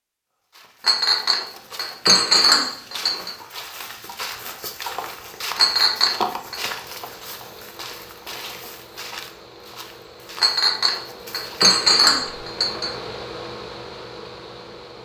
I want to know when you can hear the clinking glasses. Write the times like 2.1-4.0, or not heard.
0.8-3.4, 5.5-6.6, 10.4-12.9.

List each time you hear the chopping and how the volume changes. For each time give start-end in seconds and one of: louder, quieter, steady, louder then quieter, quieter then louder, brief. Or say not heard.
not heard.